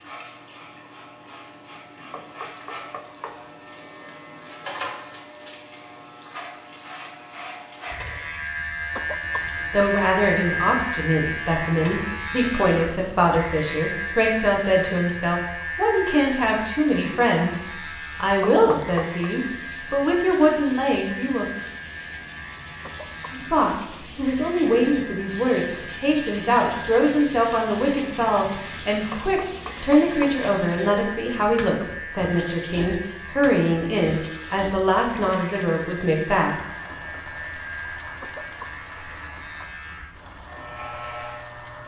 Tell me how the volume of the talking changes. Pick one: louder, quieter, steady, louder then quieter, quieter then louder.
steady.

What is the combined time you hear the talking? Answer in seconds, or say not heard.
25 s.